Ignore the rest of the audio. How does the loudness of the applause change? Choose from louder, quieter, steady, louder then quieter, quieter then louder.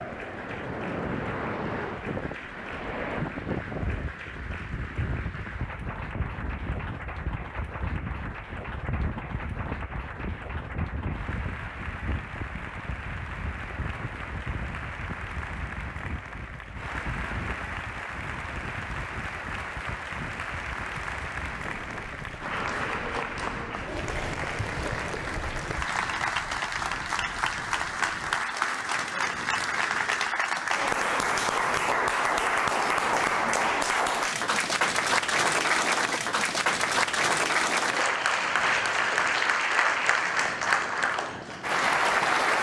louder.